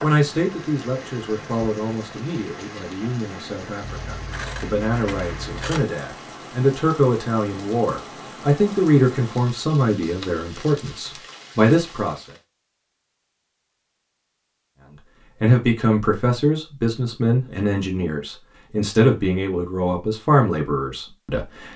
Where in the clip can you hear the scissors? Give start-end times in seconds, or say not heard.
3.8-5.8.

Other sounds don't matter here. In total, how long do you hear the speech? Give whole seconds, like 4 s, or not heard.
19 s.